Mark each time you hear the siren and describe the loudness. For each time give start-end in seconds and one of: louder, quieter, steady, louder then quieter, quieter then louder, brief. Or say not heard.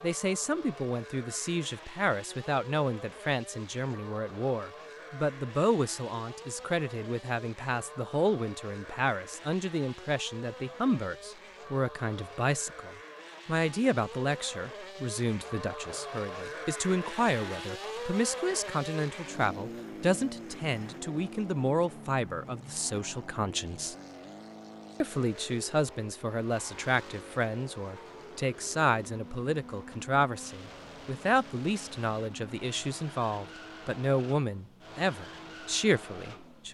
not heard.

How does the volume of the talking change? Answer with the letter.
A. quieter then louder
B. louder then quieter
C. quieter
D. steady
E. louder
D.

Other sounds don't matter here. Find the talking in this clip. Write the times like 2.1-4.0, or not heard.
0.0-23.9, 25.0-36.6.